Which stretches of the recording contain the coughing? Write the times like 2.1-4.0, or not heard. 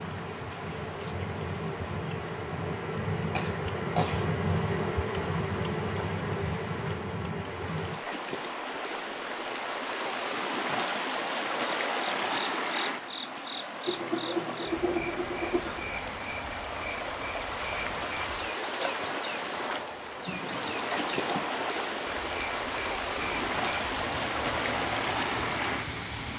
3.4-4.3, 13.8-15.8, 20.2-21.5.